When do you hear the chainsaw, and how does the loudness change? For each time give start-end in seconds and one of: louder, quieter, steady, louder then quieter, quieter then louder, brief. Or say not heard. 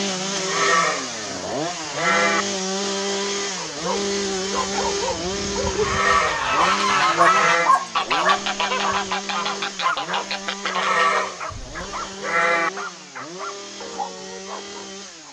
0.0-15.2 quieter.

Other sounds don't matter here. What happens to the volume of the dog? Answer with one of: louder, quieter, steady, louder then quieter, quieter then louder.
louder then quieter.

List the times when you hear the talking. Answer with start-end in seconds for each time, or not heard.
not heard.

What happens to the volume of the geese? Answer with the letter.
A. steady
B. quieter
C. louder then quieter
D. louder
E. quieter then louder
B.